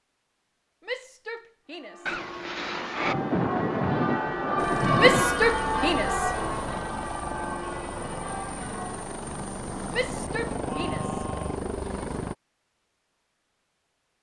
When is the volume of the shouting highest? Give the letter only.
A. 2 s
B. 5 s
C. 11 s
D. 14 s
B.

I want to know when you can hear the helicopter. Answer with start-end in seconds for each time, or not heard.
4.5-12.3.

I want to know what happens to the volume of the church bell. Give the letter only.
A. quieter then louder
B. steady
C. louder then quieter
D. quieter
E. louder
C.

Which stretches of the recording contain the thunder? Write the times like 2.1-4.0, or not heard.
2.0-5.4.